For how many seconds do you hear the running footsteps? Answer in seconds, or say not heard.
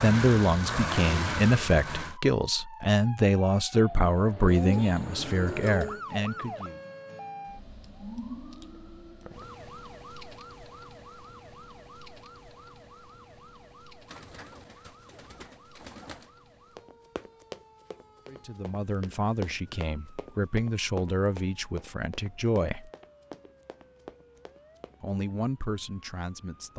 8 s.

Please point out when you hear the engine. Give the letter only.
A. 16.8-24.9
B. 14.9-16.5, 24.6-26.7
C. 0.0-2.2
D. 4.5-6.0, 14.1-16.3
C.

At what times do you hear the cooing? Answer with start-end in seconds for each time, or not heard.
4.5-6.0, 14.1-16.3.